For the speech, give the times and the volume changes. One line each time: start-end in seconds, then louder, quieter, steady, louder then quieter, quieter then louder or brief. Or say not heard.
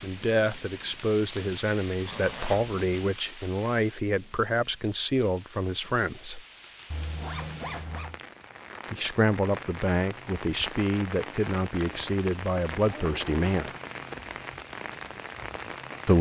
0.0-6.4 steady
8.9-13.7 steady.